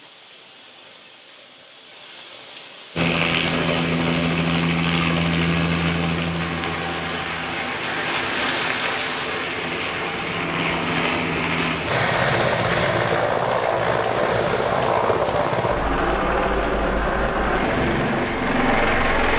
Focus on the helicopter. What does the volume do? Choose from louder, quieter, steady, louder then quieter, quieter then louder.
quieter then louder.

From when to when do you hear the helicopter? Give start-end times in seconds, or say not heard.
3.0-19.3.